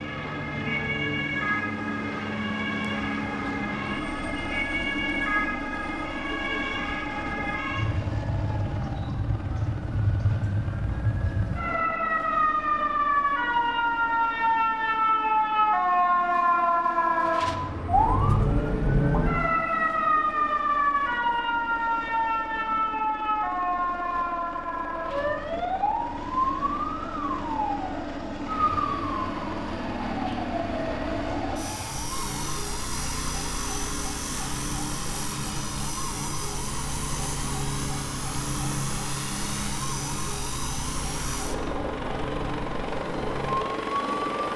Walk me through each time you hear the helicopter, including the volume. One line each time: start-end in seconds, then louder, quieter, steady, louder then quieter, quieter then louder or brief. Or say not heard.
0.0-44.5 quieter then louder.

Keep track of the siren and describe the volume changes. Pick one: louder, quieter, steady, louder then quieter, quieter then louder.
louder then quieter.